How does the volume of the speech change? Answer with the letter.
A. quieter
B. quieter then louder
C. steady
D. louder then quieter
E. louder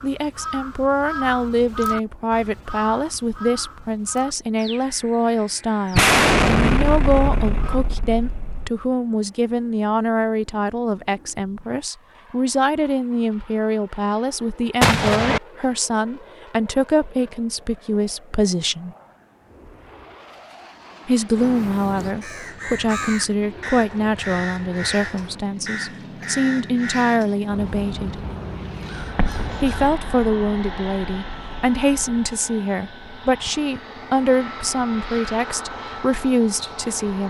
C.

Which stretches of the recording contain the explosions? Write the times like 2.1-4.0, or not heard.
6.0-8.7, 14.8-15.4, 29.1-32.2.